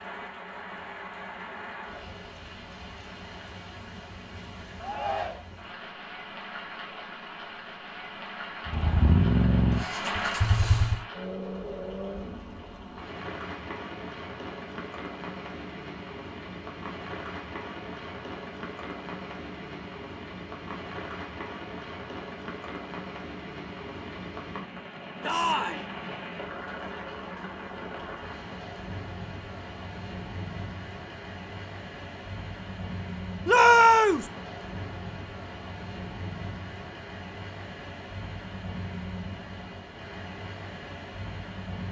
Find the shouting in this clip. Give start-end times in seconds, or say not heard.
4.8-5.5, 25.2-25.9, 33.5-34.2.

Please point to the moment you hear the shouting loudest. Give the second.
34 s.